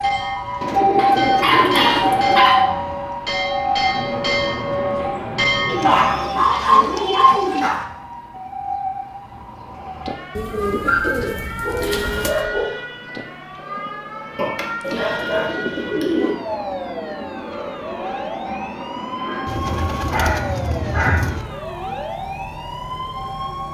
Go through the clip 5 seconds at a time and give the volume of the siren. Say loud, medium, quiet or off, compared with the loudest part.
loud, medium, medium, medium, medium.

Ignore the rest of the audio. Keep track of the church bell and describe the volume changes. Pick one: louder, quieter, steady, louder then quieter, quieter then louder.
louder.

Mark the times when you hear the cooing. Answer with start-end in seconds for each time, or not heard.
0.6-2.5, 5.7-7.7, 10.3-12.4, 14.8-16.4, 19.4-21.4.